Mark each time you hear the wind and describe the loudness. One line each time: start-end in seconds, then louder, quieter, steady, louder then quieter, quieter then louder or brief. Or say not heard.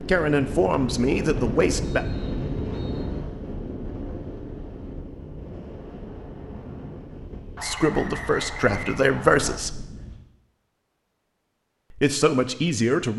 0.0-10.2 quieter.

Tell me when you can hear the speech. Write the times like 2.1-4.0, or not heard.
0.0-2.0, 7.6-9.8, 11.9-13.1.